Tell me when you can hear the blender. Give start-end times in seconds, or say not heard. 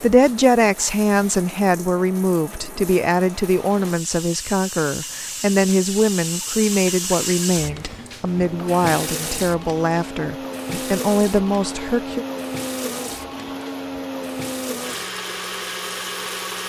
8.2-16.6.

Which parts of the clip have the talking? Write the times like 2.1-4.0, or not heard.
0.0-12.2.